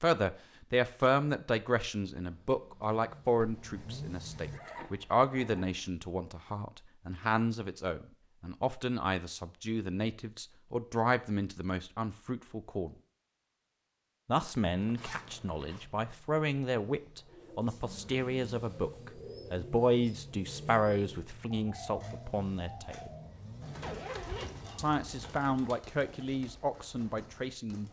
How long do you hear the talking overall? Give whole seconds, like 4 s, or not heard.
25 s.